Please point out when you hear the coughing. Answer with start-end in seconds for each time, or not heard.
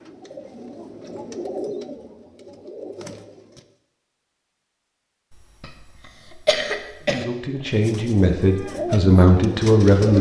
5.6-7.2.